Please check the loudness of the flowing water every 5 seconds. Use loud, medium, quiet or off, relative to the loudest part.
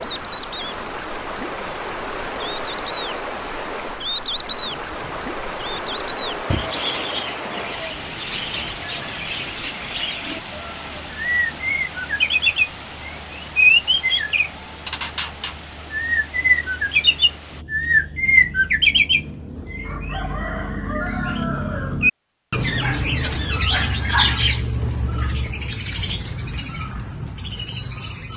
loud, loud, medium, medium, off, off.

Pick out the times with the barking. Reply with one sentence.
You can hear the barking from 22.8 to 24.6 s.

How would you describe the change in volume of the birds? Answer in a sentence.
The volume of the birds goes up, then down.